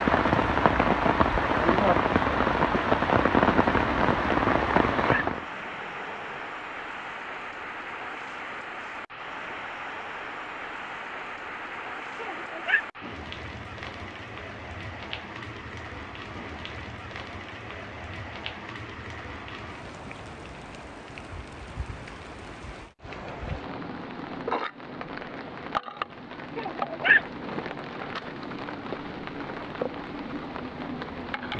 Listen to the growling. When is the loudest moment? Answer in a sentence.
The volume of the growling peaks at 27 seconds.